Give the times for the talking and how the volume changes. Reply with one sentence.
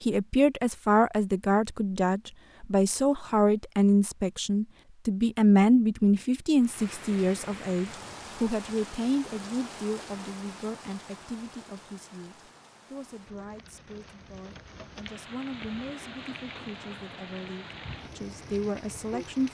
You can hear the talking from 0.0 to 19.4 s, getting quieter then louder.